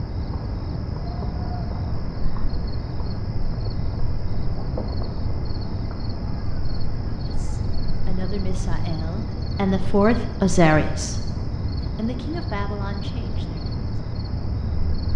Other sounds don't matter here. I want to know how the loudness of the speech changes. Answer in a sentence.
The volume of the speech goes up, then down.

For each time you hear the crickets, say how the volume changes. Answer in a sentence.
The crickets can be heard from 0.0 to 15.1 s, at a steady volume.